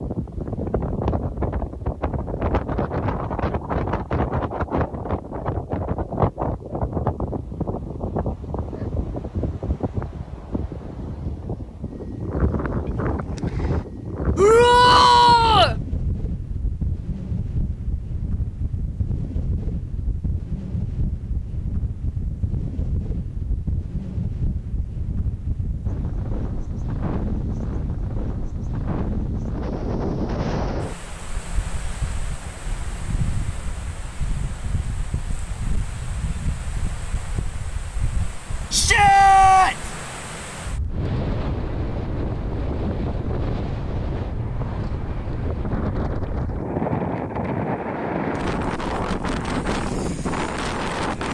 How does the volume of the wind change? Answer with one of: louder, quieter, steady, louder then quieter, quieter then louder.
quieter then louder.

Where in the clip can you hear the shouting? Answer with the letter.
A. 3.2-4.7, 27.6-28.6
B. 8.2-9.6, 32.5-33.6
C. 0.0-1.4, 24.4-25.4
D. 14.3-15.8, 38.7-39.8
D.